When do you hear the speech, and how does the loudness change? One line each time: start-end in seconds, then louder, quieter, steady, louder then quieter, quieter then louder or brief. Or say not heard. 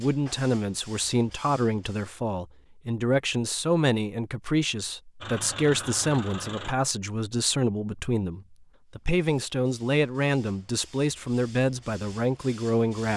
0.0-13.1 steady.